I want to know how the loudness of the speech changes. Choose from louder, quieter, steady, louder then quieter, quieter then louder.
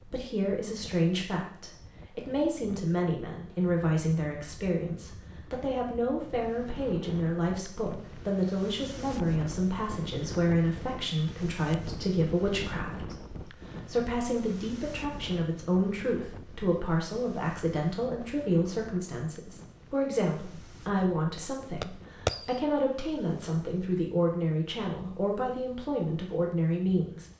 steady.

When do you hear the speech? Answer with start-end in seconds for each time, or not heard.
0.0-27.2.